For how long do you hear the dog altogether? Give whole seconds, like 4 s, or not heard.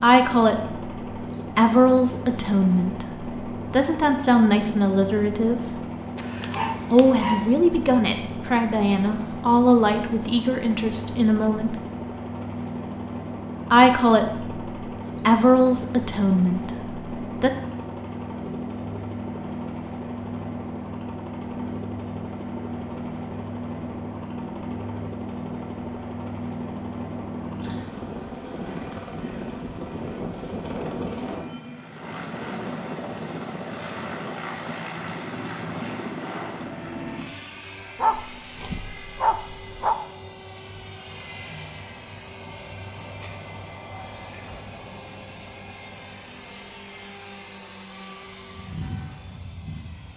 3 s.